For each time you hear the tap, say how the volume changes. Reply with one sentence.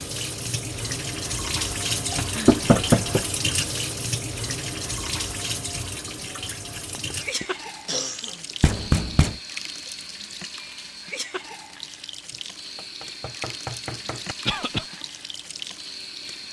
You can hear the tap from 0.0 to 16.4 s, getting quieter.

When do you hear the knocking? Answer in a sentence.
You can hear the knocking from 2.5 to 3.2 s, from 8.6 to 9.3 s and from 12.3 to 14.3 s.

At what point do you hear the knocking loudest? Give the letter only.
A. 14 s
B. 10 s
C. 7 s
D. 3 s
D.